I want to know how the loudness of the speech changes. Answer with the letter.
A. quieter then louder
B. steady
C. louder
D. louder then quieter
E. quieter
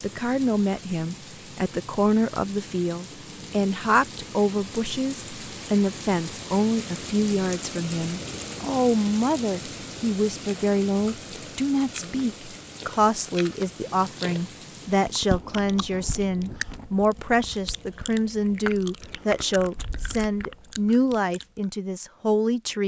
B.